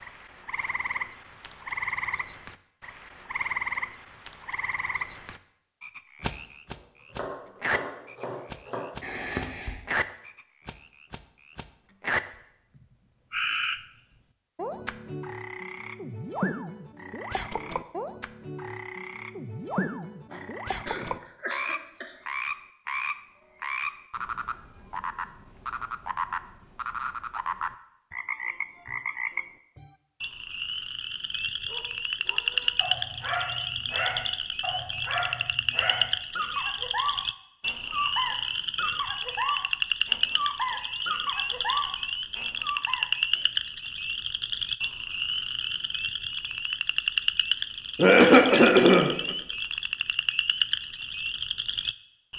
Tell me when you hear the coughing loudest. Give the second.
48 s.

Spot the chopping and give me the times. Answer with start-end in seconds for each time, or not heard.
6.7-8.9.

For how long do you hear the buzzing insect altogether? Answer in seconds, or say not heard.
not heard.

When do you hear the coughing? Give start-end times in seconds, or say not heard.
9.0-9.8, 20.3-22.1, 48.0-49.4.